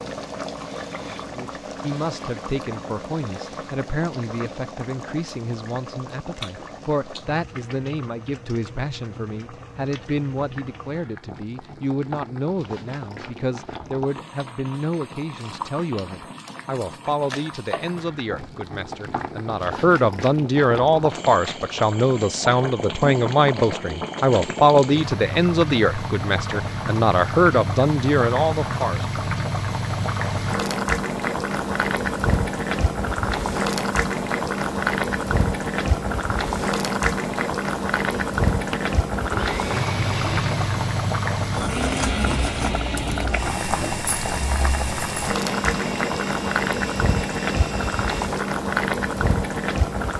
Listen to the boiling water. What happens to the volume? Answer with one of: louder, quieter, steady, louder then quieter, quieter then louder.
louder.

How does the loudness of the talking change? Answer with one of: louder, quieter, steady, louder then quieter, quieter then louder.
louder.